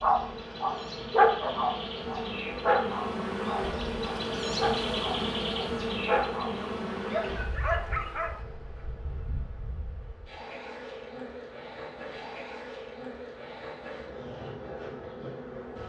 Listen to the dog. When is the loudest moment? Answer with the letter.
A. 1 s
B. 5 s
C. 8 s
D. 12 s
A.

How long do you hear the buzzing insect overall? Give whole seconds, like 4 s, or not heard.
16 s.